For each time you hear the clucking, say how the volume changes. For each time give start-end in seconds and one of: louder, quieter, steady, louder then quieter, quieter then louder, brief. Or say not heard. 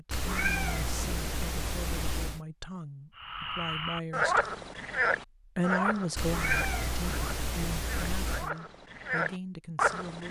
not heard.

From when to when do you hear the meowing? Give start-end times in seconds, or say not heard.
0.1-2.4, 6.2-8.5.